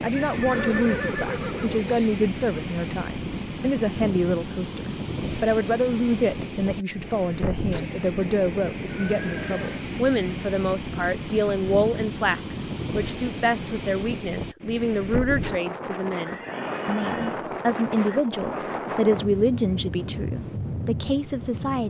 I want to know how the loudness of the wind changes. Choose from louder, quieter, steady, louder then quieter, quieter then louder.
steady.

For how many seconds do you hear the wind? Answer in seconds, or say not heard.
22 s.